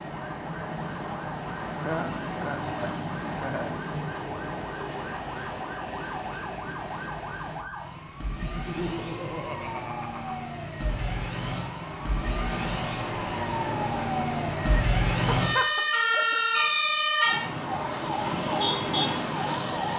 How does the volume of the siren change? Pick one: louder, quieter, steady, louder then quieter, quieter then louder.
louder.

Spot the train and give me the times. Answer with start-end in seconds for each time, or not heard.
0.0-7.7, 9.7-14.8.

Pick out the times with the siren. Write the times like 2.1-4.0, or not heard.
0.0-19.9.